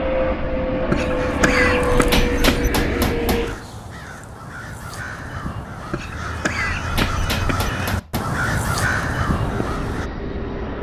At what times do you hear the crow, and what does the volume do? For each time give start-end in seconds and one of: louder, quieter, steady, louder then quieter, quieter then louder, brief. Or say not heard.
1.0-10.1 louder.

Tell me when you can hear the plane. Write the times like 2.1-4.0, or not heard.
0.0-3.6, 9.2-10.7.